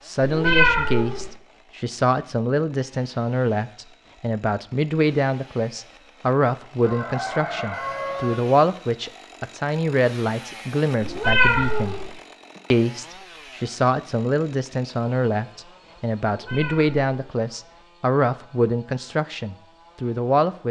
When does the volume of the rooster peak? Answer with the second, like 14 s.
8 s.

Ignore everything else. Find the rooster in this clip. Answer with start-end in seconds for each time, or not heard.
6.8-8.3.